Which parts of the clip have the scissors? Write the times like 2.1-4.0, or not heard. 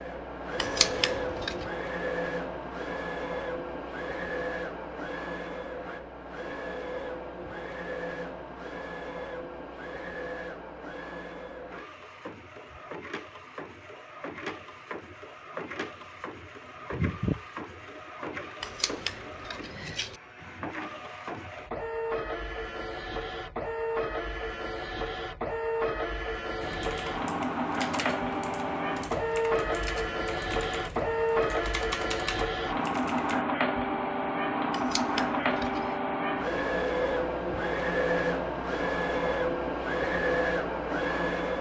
0.6-1.6, 18.6-20.2, 34.7-36.0.